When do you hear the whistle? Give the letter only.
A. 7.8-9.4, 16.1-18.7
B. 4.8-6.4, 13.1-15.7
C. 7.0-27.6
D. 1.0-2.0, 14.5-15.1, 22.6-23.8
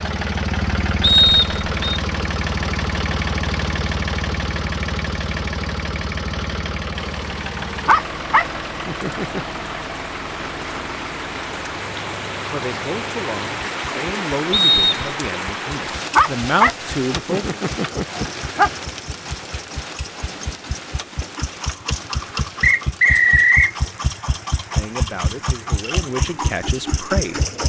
D.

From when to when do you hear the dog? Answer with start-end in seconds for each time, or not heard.
7.8-9.4, 16.1-18.7.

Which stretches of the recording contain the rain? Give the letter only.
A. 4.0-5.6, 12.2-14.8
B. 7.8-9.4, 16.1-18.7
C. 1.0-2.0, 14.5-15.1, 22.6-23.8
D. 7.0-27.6
D.